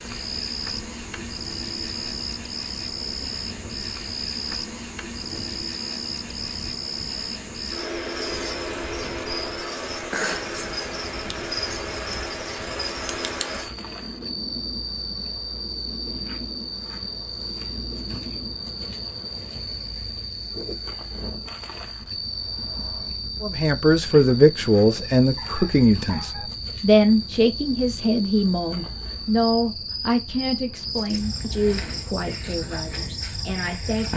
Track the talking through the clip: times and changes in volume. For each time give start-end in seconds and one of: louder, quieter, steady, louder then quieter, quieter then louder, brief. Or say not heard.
23.4-34.1 quieter.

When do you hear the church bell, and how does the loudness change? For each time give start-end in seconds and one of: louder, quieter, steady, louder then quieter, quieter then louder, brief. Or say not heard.
not heard.